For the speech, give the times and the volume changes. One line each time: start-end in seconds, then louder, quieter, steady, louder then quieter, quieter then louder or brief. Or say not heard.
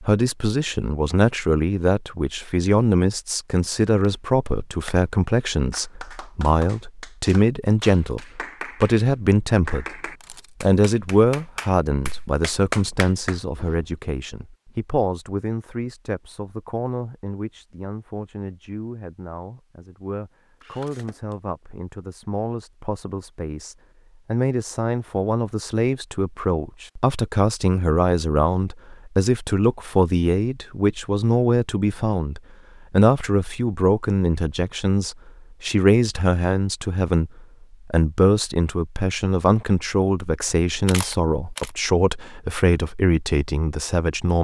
0.0-44.3 quieter then louder.